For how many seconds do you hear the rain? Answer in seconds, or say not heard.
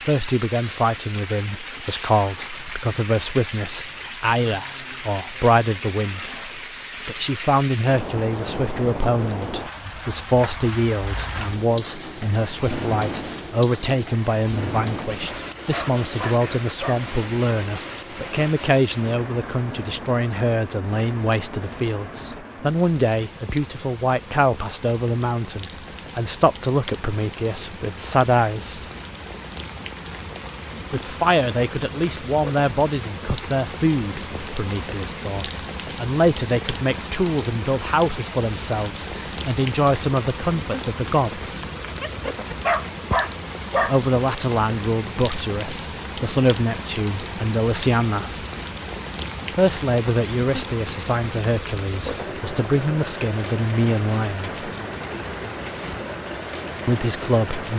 58 s.